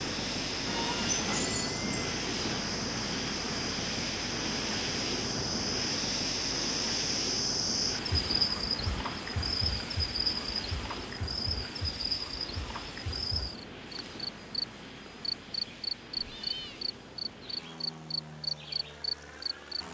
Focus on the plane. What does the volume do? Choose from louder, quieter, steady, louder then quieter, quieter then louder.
quieter.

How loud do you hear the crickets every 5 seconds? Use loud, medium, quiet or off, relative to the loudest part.
medium, loud, loud, medium.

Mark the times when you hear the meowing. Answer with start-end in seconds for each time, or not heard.
0.7-2.2, 16.1-16.8.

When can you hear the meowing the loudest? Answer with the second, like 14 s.
1 s.